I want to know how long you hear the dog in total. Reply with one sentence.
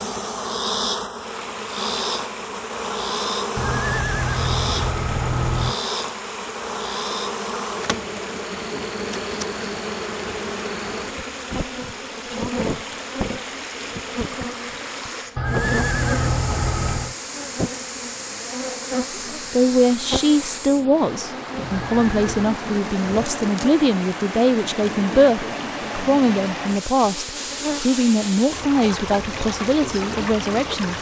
You can't hear the dog here.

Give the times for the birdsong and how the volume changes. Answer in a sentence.
The birdsong can't be heard in this clip.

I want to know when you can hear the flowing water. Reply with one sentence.
The flowing water can be heard from 0.0 to 30.9 s.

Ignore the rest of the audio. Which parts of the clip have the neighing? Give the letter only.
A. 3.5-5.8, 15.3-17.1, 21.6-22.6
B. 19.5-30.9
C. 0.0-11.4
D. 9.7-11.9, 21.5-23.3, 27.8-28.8
A.